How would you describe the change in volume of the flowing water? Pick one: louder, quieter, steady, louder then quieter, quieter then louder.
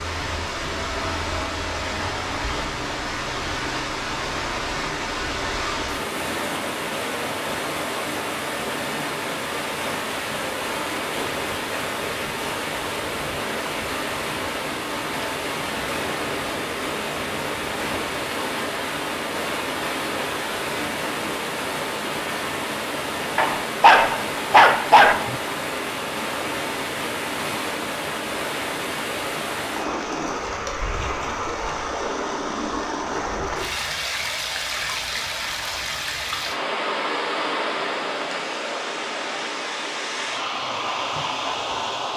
steady.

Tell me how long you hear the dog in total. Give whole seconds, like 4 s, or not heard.
2 s.